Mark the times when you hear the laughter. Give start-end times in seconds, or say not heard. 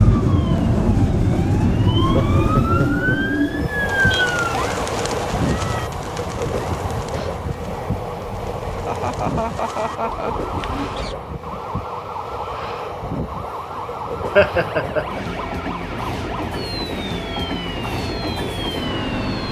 2.1-3.4, 8.8-10.3, 14.3-15.4.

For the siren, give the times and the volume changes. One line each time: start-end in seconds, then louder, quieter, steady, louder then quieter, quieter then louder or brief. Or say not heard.
0.0-19.4 quieter.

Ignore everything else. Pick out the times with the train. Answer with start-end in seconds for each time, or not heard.
0.0-19.4.